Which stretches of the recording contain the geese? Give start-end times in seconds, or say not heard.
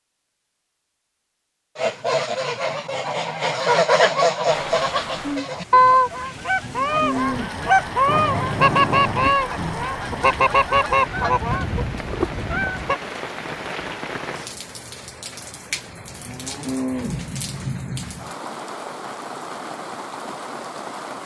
1.8-13.0.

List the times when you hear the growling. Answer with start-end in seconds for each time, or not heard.
8.1-9.9.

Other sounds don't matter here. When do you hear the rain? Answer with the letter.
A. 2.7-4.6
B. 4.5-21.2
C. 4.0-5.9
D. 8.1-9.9
B.